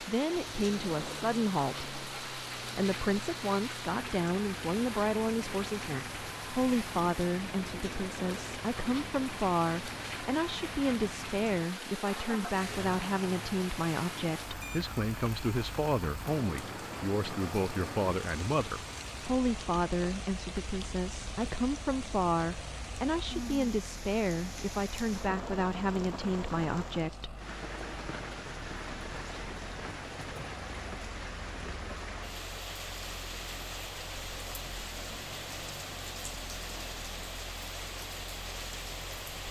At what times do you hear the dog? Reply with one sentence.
You can't hear the dog here.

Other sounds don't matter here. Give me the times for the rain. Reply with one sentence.
The rain can be heard from 0.0 to 39.4 s.